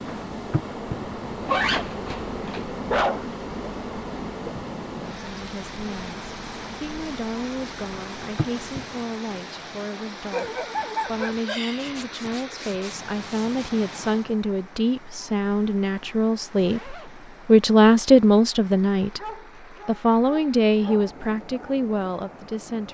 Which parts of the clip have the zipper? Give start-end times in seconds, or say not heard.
1.4-2.6, 11.8-13.7, 16.6-17.1.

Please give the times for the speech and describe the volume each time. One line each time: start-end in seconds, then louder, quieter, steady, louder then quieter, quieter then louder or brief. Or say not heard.
5.2-19.2 louder
19.9-22.8 brief.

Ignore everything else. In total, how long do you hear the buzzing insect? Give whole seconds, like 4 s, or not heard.
9 s.